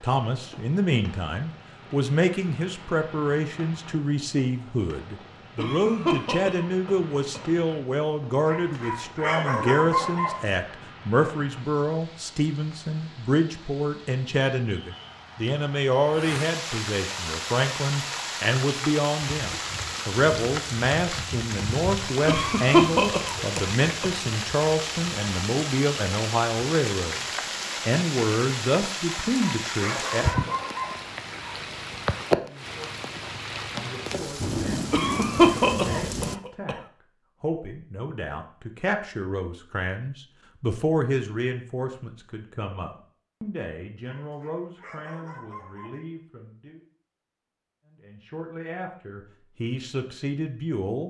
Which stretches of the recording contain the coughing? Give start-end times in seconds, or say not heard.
5.5-7.4, 22.2-24.1, 34.9-36.8.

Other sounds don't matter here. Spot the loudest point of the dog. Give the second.
10 s.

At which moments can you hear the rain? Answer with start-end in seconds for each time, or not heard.
0.0-36.4.